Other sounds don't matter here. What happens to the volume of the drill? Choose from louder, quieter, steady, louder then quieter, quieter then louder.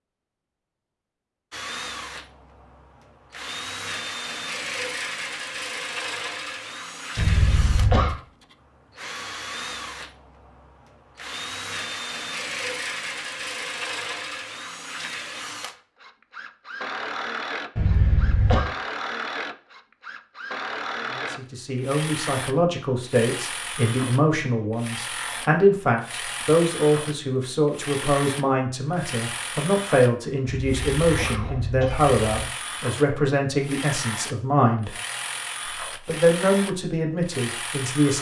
steady.